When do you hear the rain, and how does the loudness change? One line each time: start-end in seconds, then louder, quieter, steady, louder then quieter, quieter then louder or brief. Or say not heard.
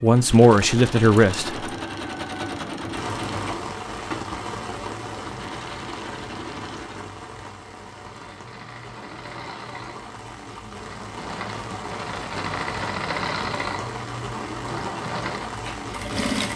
2.9-16.5 quieter then louder.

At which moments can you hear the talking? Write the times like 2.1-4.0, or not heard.
0.0-1.6.